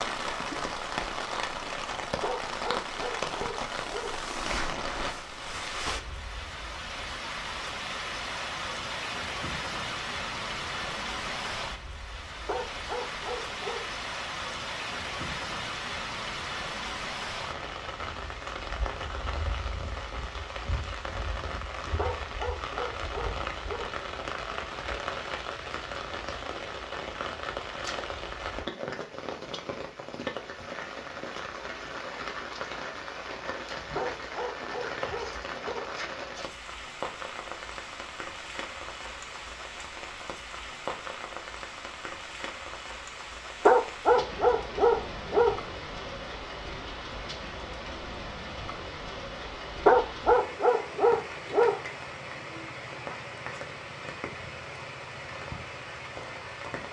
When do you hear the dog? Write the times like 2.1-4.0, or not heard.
2.2-4.2, 12.4-13.8, 21.9-23.9, 34.0-35.9, 43.6-45.6, 49.9-51.8.